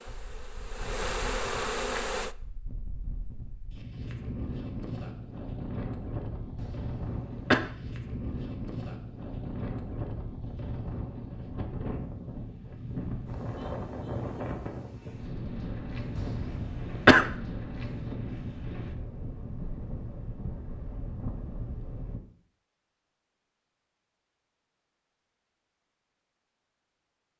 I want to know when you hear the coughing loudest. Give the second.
17 s.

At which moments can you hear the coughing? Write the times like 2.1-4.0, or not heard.
6.6-7.6, 16.1-17.3.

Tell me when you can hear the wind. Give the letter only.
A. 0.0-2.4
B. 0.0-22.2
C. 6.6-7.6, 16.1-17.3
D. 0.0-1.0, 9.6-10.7
B.